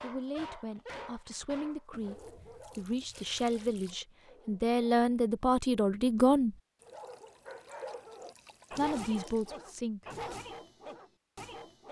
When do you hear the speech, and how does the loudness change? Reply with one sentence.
You can hear the speech from 0.0 to 6.5 s, getting louder; and briefly from 8.7 to 10.1 s.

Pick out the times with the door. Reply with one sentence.
You can't hear the door here.